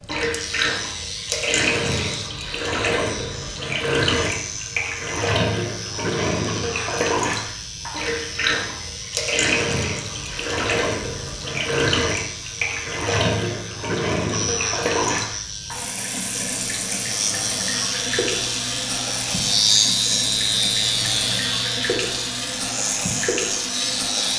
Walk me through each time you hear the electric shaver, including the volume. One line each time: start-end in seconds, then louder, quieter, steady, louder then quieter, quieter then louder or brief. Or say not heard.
0.0-24.3 louder.